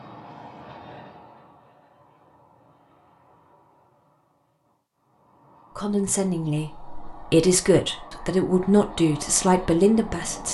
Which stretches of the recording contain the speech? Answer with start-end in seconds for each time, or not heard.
5.8-10.4.